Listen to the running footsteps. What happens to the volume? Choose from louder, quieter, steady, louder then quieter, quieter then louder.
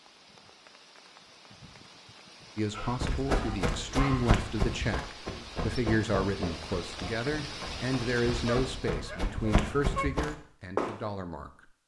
quieter then louder.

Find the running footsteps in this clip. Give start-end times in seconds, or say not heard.
2.8-11.1.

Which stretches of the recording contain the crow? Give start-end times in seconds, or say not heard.
not heard.